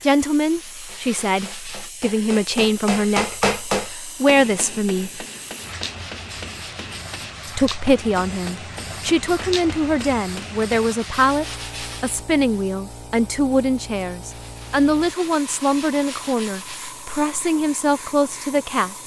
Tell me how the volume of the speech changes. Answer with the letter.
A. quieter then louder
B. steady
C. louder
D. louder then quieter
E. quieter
B.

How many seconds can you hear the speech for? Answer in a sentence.
You can hear the speech for 17 seconds altogether.